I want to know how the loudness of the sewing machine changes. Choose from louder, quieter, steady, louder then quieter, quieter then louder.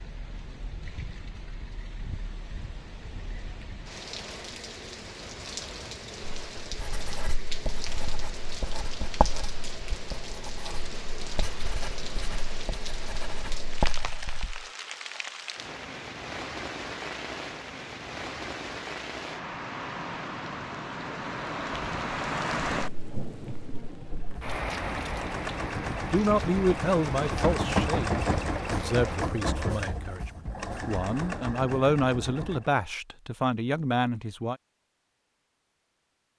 louder then quieter.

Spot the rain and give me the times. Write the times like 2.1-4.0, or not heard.
0.0-29.4.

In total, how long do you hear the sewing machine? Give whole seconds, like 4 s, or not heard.
9 s.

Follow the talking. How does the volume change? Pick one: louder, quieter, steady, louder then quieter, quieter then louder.
quieter then louder.